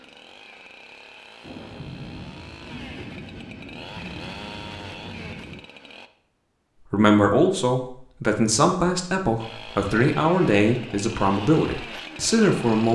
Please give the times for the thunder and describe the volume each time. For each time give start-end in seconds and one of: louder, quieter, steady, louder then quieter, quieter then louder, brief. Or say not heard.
1.4-5.7 steady.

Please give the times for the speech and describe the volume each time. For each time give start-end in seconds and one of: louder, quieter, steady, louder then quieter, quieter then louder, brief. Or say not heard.
6.9-12.9 steady.